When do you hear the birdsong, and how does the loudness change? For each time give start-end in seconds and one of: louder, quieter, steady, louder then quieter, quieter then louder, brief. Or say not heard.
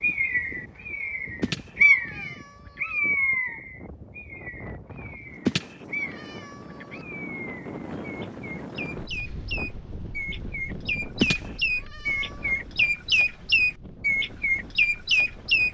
0.0-15.6 quieter then louder.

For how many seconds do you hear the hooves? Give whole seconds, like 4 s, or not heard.
not heard.